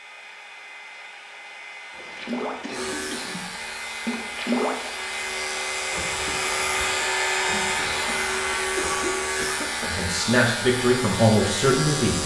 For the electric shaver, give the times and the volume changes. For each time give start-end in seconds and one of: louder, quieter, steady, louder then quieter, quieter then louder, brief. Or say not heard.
2.7-12.2 louder.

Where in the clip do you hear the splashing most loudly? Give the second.
5 s.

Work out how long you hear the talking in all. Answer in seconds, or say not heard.
2 s.